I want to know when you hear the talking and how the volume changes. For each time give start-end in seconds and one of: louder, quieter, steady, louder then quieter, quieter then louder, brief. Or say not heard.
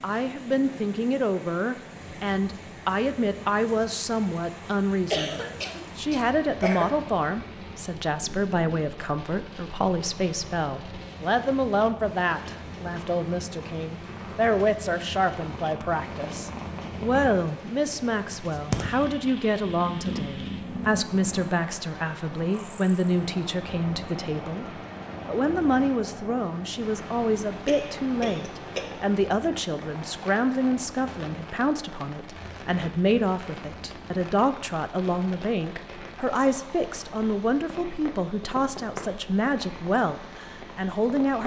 0.0-41.4 steady.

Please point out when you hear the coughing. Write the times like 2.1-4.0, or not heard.
5.1-6.8, 27.6-29.1.